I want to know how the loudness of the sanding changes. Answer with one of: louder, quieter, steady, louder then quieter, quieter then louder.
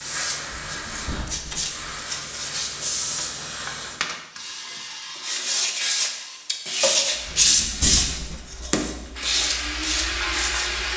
louder then quieter.